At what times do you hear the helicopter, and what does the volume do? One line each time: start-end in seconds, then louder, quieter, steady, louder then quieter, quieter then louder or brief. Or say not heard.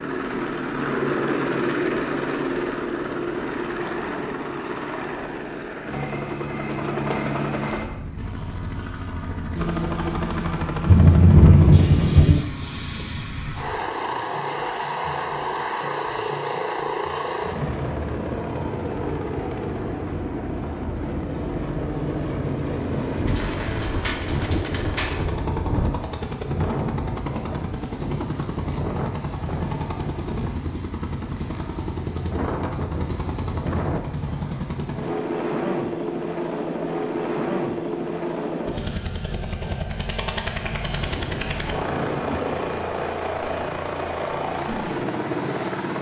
0.0-45.9 steady.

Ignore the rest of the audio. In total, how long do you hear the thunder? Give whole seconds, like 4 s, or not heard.
6 s.